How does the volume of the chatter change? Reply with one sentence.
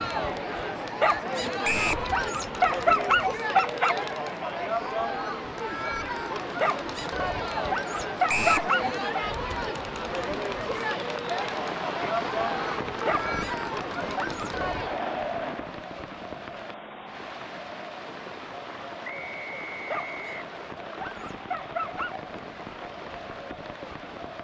The volume of the chatter goes down.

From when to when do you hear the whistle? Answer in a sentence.
The whistle can be heard from 1.6 to 2.0 s, from 8.2 to 8.7 s and from 19.1 to 20.4 s.